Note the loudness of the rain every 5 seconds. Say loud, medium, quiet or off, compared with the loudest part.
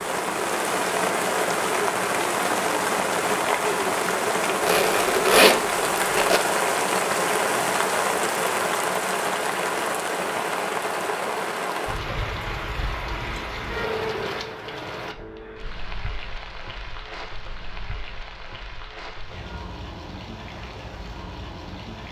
loud, loud, medium, quiet, quiet.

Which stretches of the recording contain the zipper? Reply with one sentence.
You can hear the zipper from 4.6 to 6.4 s.